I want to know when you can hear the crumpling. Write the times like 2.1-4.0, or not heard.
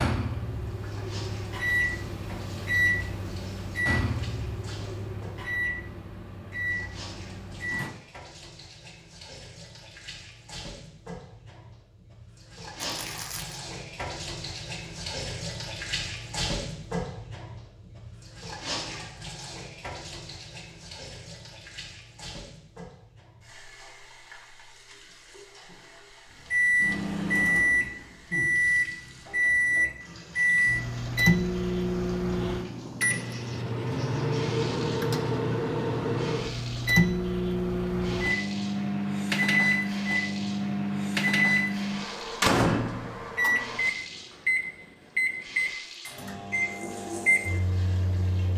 12.8-13.6.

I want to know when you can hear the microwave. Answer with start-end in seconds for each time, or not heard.
0.0-8.0, 26.5-48.5.